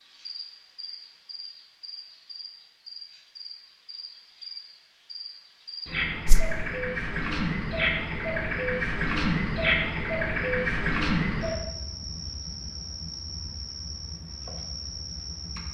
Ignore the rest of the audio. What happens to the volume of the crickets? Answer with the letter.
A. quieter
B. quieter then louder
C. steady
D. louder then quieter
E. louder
D.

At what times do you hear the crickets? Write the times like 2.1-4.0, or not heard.
0.0-15.6.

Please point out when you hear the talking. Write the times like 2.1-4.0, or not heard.
not heard.